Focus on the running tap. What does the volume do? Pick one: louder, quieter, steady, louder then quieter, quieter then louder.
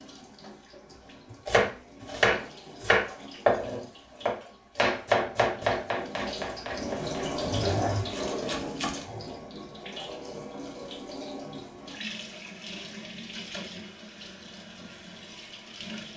louder then quieter.